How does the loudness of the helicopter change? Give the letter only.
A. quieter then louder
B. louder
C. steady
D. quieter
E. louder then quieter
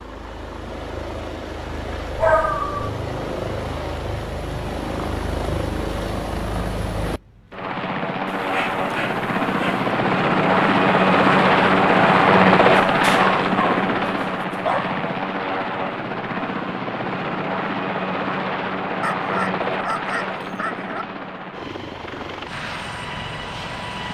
E.